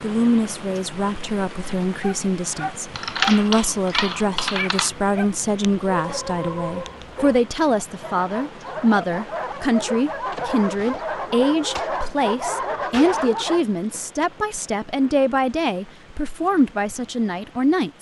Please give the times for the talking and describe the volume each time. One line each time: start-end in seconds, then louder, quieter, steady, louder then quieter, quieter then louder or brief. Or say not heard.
0.0-17.9 steady.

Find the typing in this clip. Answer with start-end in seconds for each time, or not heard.
3.0-4.9.